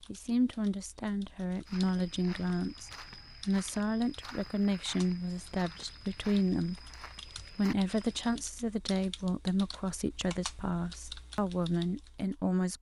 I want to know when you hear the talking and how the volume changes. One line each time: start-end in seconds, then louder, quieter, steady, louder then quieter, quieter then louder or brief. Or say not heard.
0.1-12.7 steady.